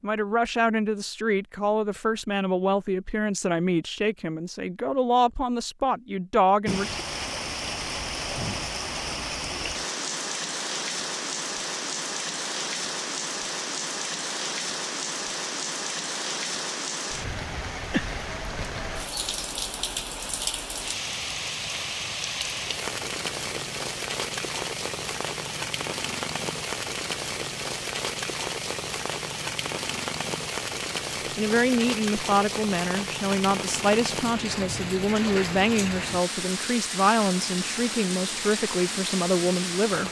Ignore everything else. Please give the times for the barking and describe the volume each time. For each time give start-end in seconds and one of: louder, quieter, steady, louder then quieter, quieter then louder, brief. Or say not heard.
not heard.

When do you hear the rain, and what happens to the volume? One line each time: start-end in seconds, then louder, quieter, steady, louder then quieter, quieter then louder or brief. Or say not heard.
6.7-40.0 steady.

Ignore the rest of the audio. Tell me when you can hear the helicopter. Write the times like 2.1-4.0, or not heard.
not heard.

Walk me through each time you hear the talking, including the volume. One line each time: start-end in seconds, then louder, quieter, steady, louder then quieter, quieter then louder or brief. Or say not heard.
0.0-7.0 steady
31.4-40.0 steady.